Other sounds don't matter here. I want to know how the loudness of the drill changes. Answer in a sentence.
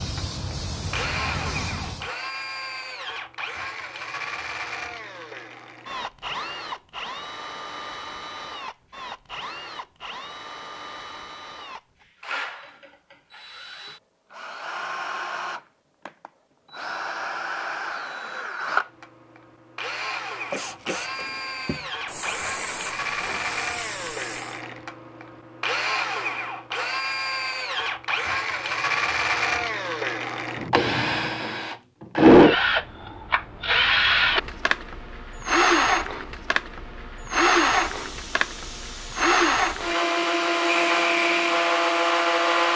The volume of the drill goes up.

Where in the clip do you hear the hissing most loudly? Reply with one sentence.
The loudest moment of the hissing is at 41 seconds.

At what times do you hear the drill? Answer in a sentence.
You can hear the drill from 0.0 to 42.7 s.